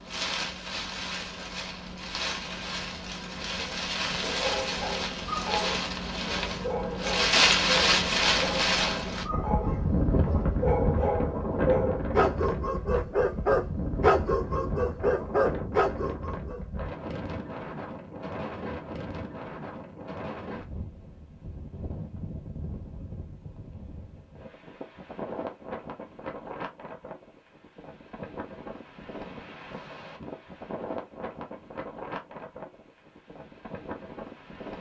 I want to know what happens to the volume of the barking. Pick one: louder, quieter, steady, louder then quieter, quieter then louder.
louder.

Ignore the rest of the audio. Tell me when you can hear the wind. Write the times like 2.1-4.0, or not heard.
0.0-34.7.